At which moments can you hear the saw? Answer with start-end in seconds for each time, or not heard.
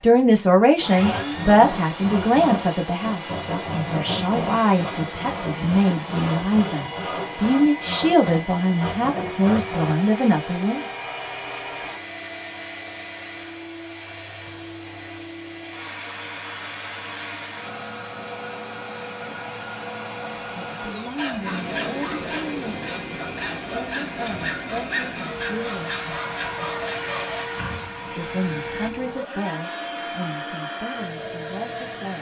0.8-9.9, 21.1-27.5.